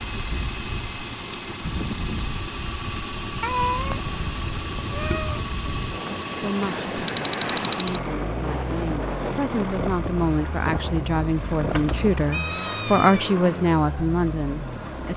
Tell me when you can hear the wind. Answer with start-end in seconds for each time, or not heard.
0.0-12.2.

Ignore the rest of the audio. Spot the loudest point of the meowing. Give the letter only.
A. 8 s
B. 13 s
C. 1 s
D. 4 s
D.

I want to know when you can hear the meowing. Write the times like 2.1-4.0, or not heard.
3.4-5.5, 11.7-13.2.